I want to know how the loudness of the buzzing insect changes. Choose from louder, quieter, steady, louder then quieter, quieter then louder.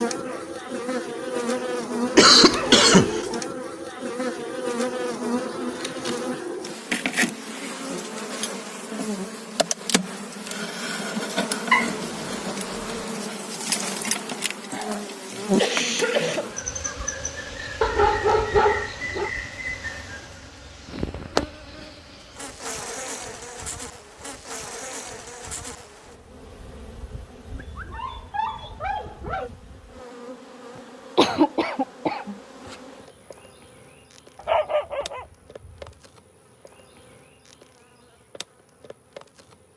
quieter.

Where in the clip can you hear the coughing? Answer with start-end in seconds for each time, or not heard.
2.1-3.4, 15.6-16.5, 31.1-32.4.